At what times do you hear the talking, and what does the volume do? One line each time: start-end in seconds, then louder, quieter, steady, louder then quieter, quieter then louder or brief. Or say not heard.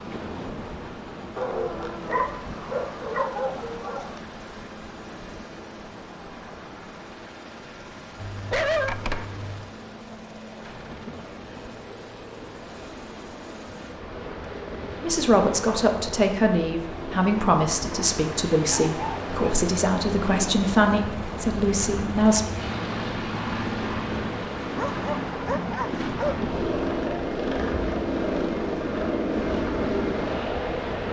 15.0-22.4 steady.